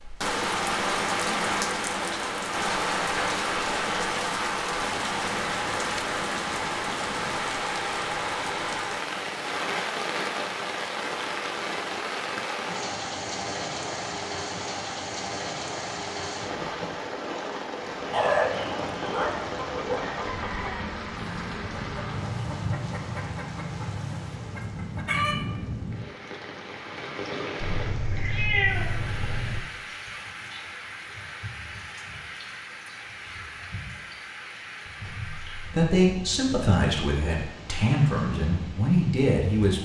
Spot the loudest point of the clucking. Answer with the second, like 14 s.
25 s.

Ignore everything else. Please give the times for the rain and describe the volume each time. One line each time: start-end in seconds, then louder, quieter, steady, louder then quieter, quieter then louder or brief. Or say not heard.
0.0-39.8 quieter.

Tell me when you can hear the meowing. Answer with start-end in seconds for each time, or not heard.
27.6-29.6.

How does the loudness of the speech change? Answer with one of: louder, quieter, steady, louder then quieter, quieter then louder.
quieter then louder.